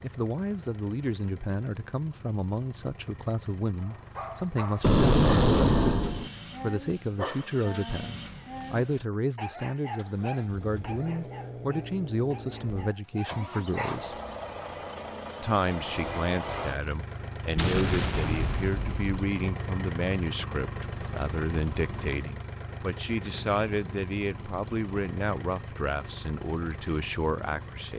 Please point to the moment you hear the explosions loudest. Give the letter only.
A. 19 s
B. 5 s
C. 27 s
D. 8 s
B.